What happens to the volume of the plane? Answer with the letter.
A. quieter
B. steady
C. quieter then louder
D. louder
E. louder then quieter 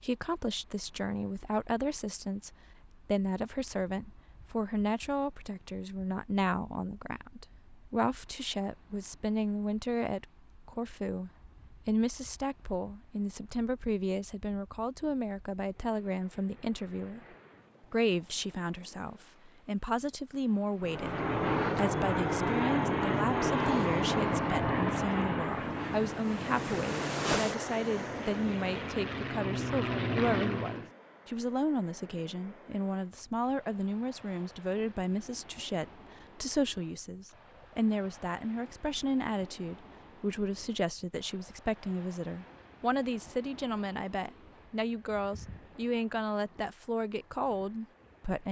C.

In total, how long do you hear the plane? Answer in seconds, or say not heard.
10 s.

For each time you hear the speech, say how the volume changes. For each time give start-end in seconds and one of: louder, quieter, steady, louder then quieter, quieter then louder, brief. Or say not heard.
0.0-17.2 steady
17.9-48.4 steady.